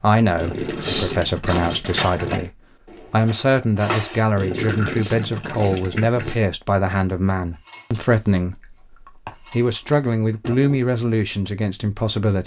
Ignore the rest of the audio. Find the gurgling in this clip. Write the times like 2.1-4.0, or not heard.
0.3-2.5, 4.3-6.4, 10.4-10.8.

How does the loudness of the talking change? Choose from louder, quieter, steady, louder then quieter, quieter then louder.
steady.